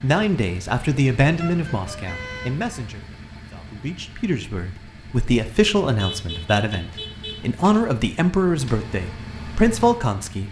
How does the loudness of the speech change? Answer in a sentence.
The loudness of the speech goes down, then up.